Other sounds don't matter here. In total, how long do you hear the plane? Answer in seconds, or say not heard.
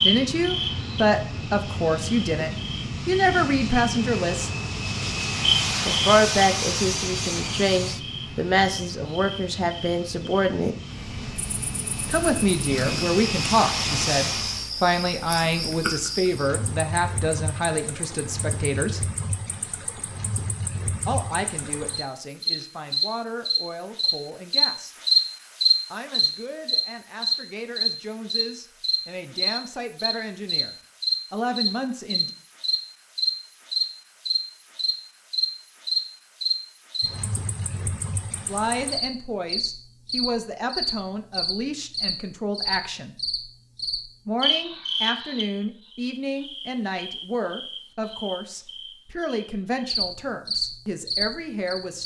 15 s.